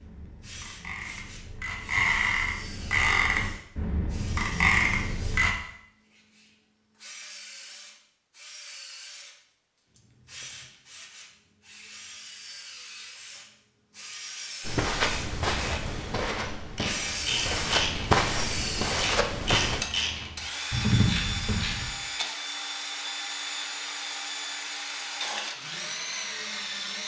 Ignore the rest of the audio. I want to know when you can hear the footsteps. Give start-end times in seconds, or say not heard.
14.6-19.9.